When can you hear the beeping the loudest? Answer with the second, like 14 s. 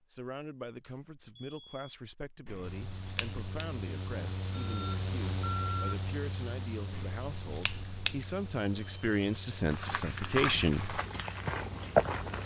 6 s.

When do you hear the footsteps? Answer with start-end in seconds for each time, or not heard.
9.7-12.4.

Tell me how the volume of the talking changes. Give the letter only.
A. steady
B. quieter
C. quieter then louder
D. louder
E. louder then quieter
D.